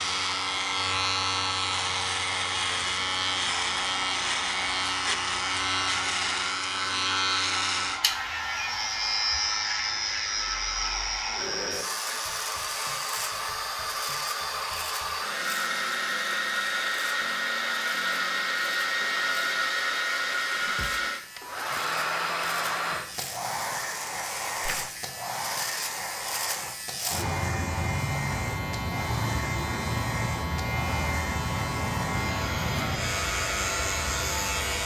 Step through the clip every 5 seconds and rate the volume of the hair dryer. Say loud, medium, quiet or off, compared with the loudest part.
medium, medium, medium, loud, loud, medium, medium.